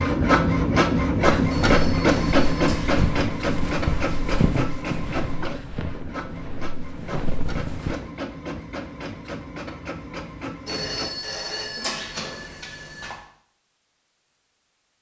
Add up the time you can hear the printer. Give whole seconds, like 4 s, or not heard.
11 s.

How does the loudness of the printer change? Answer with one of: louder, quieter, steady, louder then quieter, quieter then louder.
quieter.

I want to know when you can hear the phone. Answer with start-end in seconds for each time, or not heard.
1.5-3.0, 10.7-13.2.